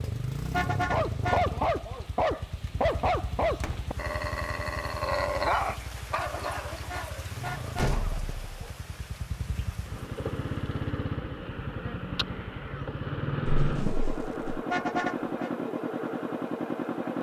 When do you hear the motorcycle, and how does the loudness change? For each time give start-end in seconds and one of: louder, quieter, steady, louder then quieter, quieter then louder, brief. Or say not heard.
0.0-17.1 quieter then louder.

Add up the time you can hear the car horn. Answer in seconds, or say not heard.
4 s.